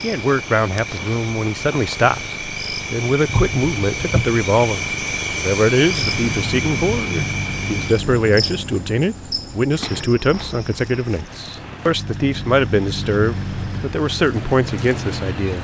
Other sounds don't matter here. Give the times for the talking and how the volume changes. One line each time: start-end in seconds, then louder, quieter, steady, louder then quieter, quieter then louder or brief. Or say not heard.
0.0-15.5 steady.